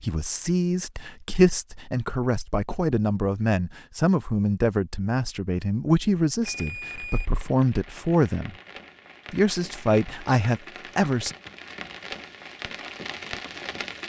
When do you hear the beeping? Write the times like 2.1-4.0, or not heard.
6.5-7.3.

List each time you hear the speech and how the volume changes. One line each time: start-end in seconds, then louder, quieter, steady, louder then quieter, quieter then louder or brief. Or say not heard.
0.0-8.6 steady
9.3-11.3 brief.